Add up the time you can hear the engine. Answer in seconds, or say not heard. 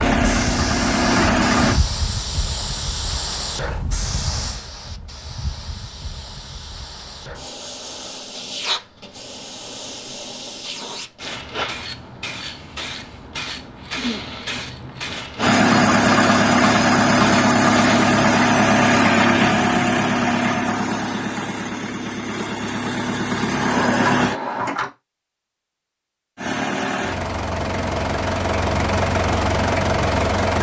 15 s.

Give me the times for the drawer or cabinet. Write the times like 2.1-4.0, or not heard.
23.5-24.9.